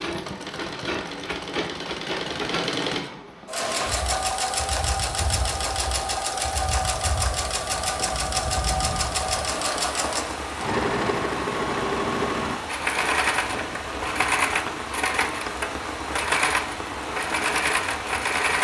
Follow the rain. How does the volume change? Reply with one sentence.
The volume of the rain goes up.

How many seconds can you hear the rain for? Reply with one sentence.
The rain can be heard for 15 seconds in total.